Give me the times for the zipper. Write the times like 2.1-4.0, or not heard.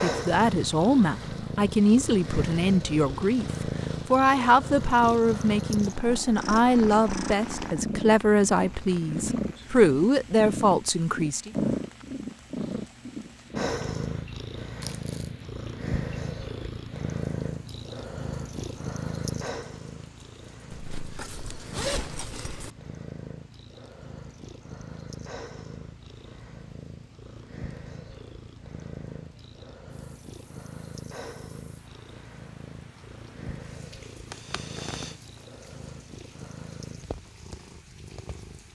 20.7-22.7.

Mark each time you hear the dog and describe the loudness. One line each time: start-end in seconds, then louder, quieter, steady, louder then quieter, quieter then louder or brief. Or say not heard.
not heard.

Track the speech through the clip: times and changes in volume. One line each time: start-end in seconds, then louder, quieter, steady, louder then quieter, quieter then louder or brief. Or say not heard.
0.0-11.5 steady.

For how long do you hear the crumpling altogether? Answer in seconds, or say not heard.
2 s.